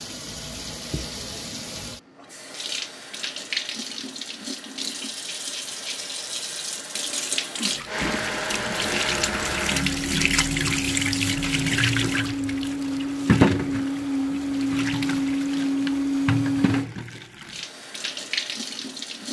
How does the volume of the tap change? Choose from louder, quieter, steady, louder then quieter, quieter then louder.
louder then quieter.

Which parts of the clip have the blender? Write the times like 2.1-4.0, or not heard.
7.8-16.9.